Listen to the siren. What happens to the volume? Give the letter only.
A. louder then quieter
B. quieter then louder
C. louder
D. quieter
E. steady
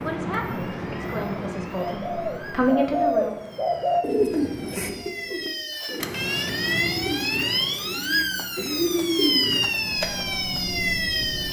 C.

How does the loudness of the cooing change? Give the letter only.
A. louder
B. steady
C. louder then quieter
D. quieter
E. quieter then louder
E.